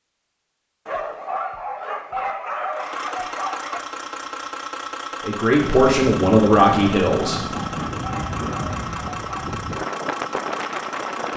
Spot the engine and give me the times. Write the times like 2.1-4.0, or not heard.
2.7-11.3.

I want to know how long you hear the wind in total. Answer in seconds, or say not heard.
6 s.